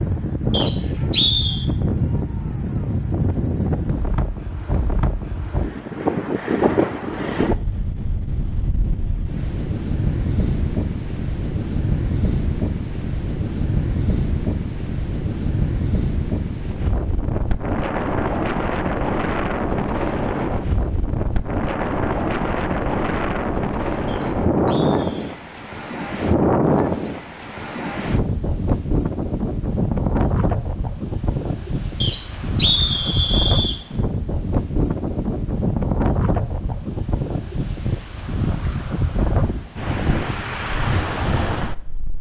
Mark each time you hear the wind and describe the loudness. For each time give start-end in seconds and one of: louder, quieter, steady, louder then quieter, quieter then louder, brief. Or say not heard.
0.0-42.1 steady.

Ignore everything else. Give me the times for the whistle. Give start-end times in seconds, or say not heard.
0.5-1.6, 24.1-25.4, 32.0-33.8.